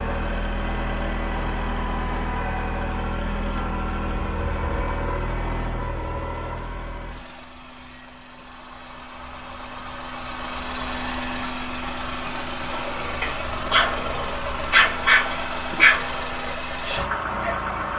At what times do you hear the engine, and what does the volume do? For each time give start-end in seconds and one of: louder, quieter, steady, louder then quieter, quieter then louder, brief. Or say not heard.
0.0-17.9 quieter then louder.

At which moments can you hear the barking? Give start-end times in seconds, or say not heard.
12.7-17.6.